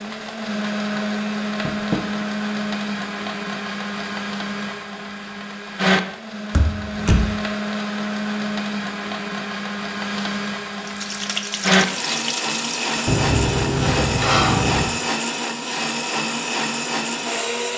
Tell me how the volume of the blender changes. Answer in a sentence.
The volume of the blender stays about the same.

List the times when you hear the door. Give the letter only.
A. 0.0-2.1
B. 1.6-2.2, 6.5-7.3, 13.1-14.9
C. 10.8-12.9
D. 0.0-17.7
B.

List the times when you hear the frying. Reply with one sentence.
The frying can be heard from 10.8 to 12.9 s.